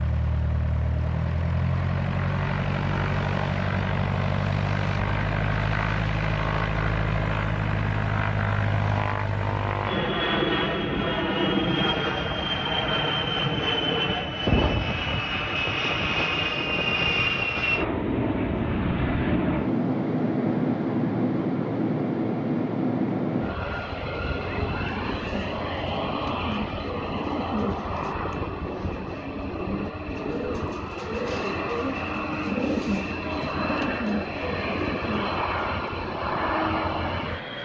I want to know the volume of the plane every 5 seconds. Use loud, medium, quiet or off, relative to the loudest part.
loud, loud, loud, loud, loud, medium, medium, loud.